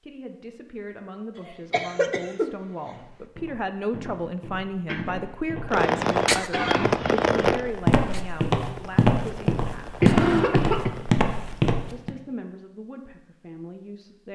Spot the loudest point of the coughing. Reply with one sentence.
The volume of the coughing peaks at 10 seconds.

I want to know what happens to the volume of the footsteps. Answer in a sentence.
The volume of the footsteps goes up.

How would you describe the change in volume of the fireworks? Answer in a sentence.
The loudness of the fireworks goes down.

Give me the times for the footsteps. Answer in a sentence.
You can hear the footsteps from 2.9 to 12.2 s.